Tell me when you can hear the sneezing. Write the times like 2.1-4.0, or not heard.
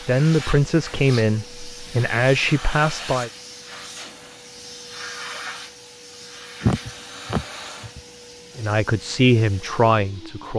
6.6-8.0.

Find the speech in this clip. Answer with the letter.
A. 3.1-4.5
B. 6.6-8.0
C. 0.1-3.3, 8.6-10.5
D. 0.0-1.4
C.